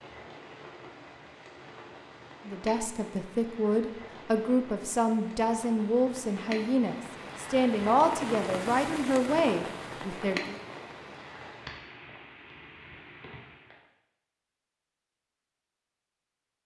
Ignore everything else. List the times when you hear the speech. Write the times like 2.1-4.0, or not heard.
2.5-10.6.